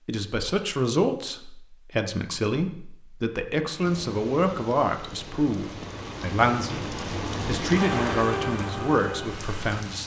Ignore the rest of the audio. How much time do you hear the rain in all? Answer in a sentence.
The rain can be heard for 6 seconds in total.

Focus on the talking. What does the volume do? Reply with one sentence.
The volume of the talking stays about the same.